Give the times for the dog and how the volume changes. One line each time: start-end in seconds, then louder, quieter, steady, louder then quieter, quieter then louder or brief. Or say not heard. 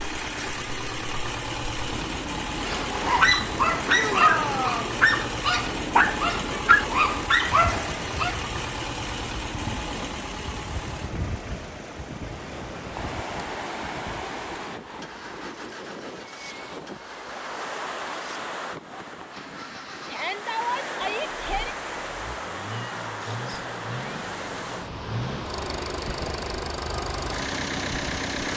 2.6-8.4 steady.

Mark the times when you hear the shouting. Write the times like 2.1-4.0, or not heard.
3.9-5.0, 20.1-21.8.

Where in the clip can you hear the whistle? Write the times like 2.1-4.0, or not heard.
not heard.